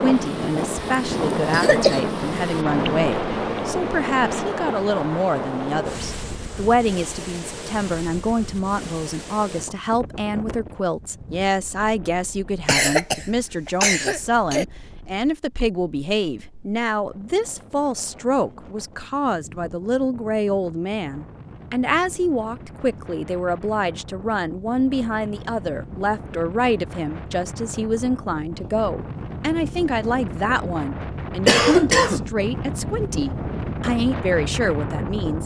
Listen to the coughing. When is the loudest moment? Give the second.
32 s.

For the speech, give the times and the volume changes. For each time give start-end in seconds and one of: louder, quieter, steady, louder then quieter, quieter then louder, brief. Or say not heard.
0.0-35.4 steady.